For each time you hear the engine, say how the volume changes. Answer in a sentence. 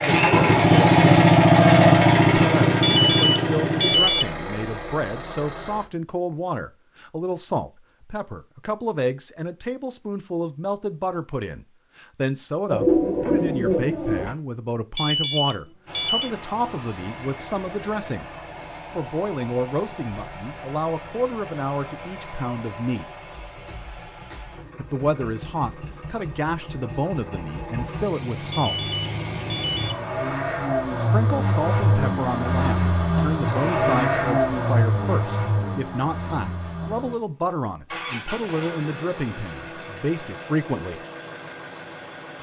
You can hear the engine from 0.0 to 5.9 s, getting quieter; and from 15.8 to 42.3 s, getting louder then quieter.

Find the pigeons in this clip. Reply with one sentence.
You can hear the pigeons from 12.7 to 14.3 s.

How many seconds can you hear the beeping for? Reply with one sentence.
The beeping can be heard for 4 seconds in total.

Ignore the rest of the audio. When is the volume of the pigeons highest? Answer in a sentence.
The volume of the pigeons peaks at 13 seconds.